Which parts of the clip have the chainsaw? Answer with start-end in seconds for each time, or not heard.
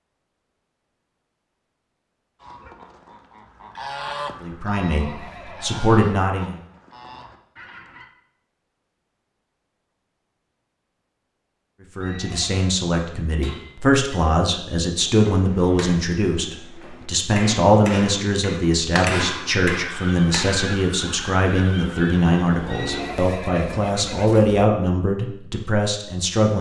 not heard.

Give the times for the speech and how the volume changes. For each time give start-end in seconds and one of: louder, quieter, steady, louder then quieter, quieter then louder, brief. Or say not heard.
4.4-6.5 brief
11.9-26.5 steady.